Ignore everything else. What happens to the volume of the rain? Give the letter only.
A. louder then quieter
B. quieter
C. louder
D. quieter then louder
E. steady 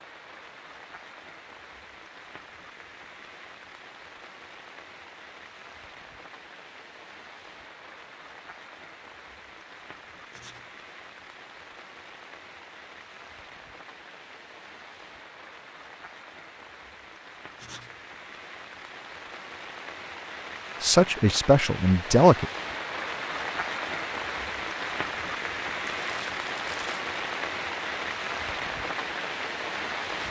C.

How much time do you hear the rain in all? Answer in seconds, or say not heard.
30 s.